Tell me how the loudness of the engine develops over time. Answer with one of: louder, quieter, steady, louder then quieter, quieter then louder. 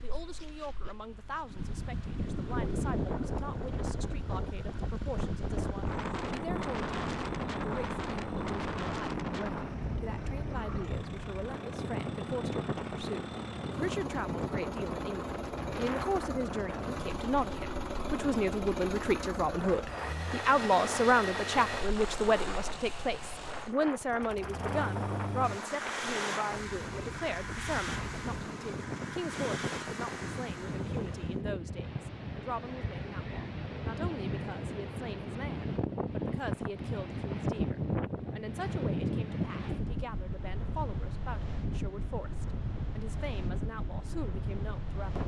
louder.